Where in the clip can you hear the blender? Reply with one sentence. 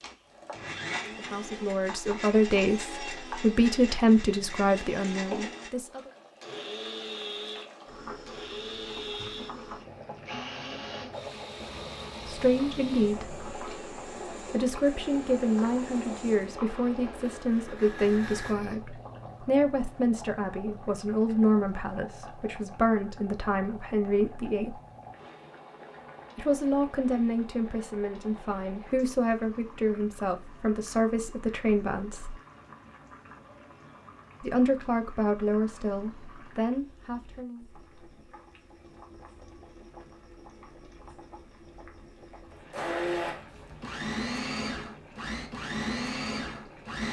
You can hear the blender from 0.0 to 18.8 s and from 42.3 to 47.0 s.